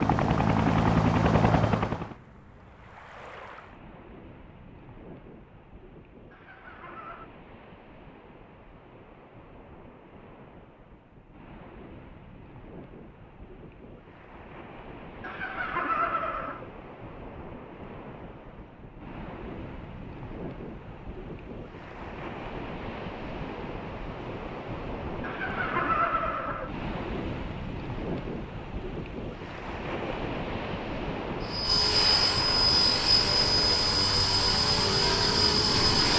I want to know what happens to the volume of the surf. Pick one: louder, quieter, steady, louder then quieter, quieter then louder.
louder.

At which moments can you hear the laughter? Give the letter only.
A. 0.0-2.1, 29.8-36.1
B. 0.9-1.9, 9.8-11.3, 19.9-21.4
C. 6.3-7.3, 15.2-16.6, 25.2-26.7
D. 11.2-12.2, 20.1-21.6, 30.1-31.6
C.